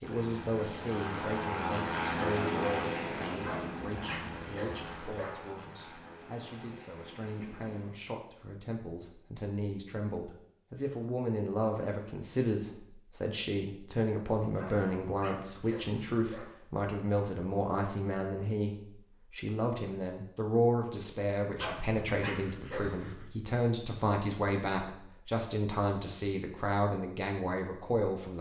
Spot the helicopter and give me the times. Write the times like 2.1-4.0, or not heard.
0.0-8.0.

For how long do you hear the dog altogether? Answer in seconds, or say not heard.
6 s.